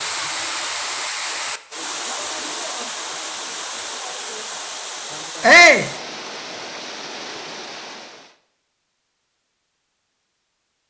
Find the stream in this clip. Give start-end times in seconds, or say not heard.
0.0-8.3.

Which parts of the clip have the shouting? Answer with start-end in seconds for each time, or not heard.
5.4-5.9.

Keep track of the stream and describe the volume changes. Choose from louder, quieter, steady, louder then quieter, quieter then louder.
quieter.